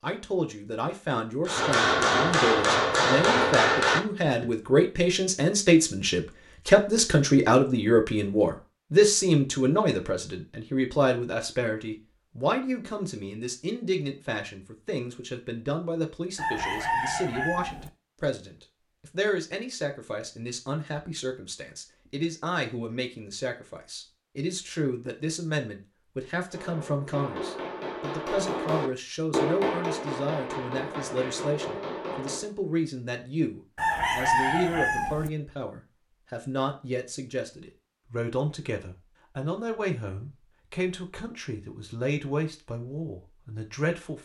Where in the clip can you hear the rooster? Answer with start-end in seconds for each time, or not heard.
16.4-17.9, 33.8-35.3.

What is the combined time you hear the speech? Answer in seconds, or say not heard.
44 s.